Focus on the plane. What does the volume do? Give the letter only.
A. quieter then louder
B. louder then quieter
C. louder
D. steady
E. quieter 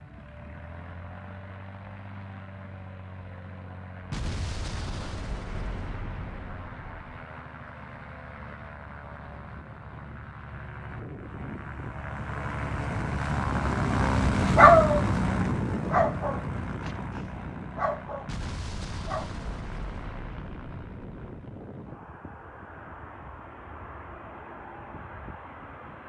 B.